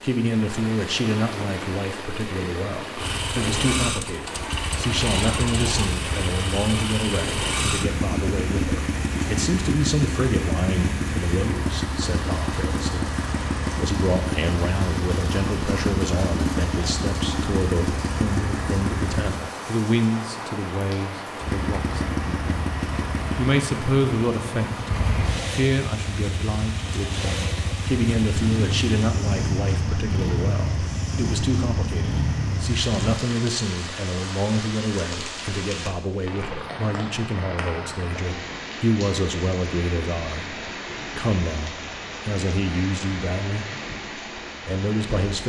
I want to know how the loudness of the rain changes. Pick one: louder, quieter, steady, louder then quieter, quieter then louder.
steady.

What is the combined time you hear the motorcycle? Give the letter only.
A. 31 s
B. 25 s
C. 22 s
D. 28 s
D.